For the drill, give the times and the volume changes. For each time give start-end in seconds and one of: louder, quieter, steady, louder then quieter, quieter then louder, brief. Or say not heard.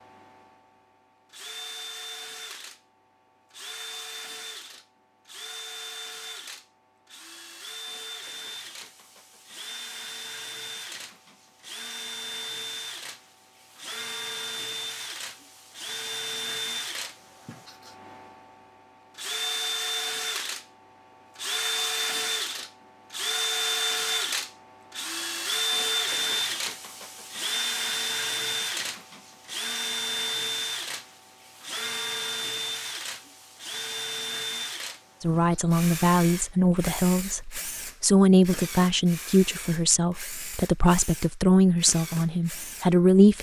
0.0-43.3 louder then quieter.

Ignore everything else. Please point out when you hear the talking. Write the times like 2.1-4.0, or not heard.
35.2-43.3.